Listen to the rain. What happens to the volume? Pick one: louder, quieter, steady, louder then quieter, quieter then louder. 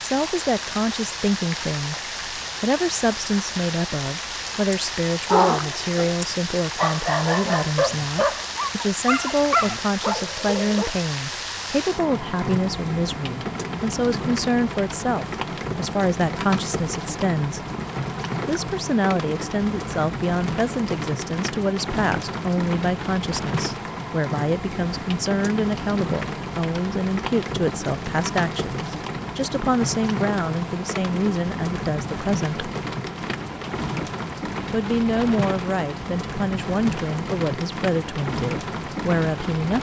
steady.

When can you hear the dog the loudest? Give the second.
5 s.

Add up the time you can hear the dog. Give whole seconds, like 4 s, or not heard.
6 s.